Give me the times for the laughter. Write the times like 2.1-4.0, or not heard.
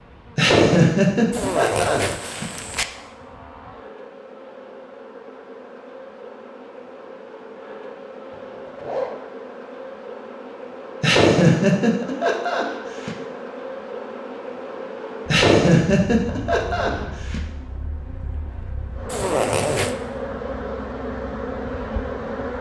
0.3-2.5, 11.0-13.1, 15.3-17.4.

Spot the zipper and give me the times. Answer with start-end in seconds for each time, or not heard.
1.3-2.9, 8.3-9.2, 19.1-19.9.